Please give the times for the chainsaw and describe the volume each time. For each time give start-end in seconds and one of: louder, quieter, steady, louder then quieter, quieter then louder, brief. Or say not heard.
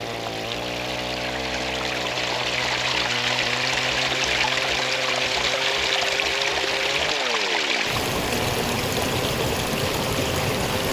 0.0-10.8 steady.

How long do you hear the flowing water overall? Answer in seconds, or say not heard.
11 s.